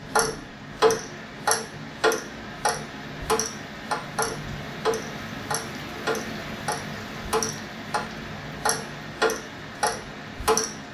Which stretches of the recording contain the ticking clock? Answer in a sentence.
You can hear the ticking clock from 0.0 to 8.0 s and from 8.6 to 10.7 s.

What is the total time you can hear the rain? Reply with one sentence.
The rain can be heard for 11 seconds in total.